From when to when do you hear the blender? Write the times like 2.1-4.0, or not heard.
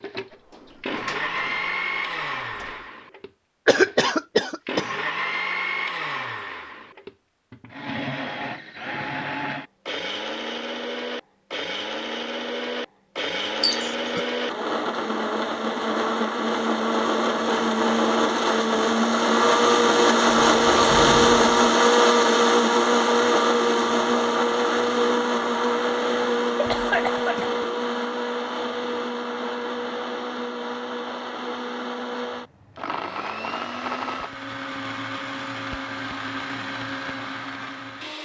0.0-38.1.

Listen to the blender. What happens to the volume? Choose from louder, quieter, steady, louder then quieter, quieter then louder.
louder then quieter.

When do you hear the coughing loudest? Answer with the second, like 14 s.
4 s.